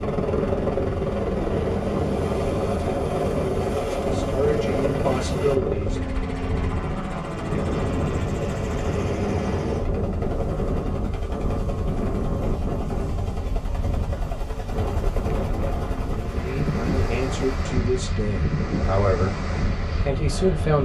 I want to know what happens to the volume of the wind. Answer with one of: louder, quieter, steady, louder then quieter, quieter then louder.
steady.